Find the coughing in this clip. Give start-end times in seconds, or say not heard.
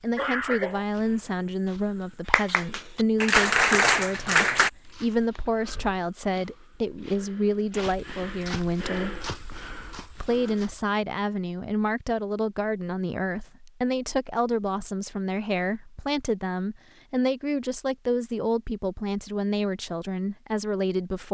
0.1-0.8.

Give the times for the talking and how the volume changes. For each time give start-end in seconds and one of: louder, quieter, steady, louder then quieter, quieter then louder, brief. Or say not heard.
0.0-9.2 steady
10.2-21.2 steady.